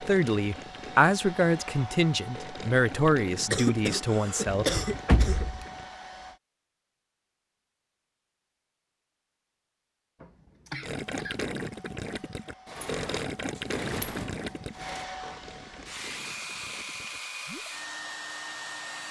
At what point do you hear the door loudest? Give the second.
5 s.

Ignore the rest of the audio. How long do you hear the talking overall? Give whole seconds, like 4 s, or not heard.
5 s.